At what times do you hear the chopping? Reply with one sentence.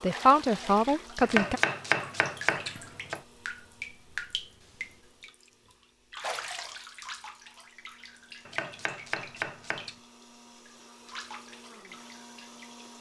You can hear the chopping from 1.2 to 3.2 s and from 8.4 to 9.9 s.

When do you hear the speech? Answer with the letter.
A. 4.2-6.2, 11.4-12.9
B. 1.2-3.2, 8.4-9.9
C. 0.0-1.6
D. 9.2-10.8
C.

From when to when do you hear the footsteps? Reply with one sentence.
The footsteps can't be heard in this clip.